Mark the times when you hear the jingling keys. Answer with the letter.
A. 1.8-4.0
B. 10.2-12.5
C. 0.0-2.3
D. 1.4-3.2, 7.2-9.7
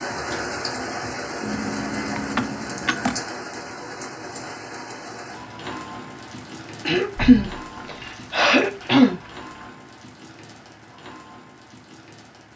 D.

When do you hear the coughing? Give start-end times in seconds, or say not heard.
6.8-9.2.